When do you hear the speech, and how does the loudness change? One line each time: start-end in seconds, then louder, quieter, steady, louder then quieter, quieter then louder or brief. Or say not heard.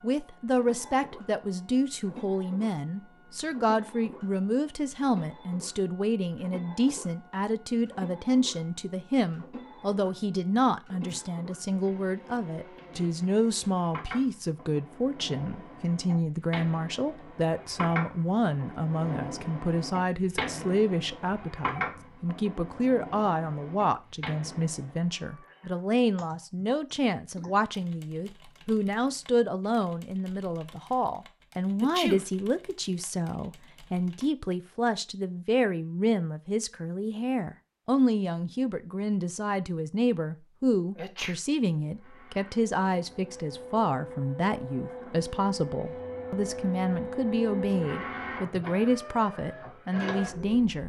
0.0-50.8 steady.